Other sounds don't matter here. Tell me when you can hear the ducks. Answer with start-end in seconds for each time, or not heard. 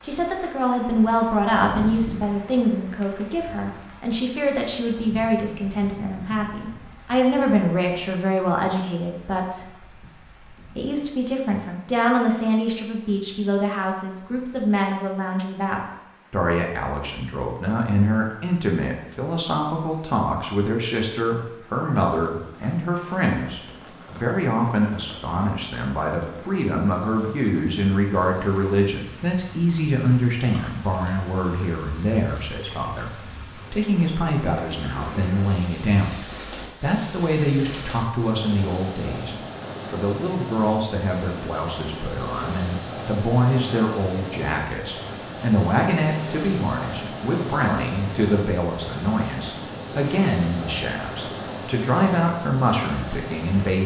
not heard.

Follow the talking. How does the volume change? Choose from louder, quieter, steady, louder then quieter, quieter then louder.
steady.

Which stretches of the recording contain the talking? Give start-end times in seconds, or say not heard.
0.0-53.8.